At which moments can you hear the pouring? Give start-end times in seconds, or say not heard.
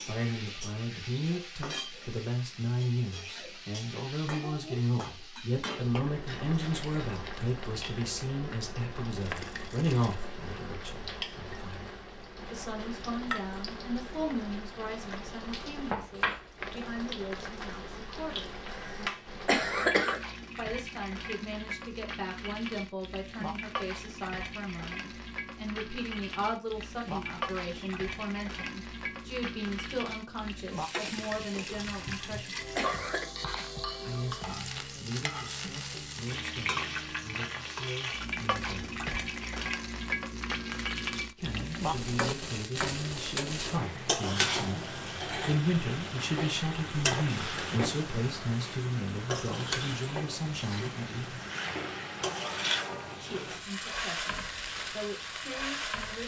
9.2-10.2, 30.9-33.0.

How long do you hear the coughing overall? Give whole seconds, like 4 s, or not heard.
3 s.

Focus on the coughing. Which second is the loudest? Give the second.
20 s.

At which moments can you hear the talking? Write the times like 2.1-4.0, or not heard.
0.0-18.6, 20.6-32.5, 34.0-39.0, 41.3-51.5, 53.2-56.2.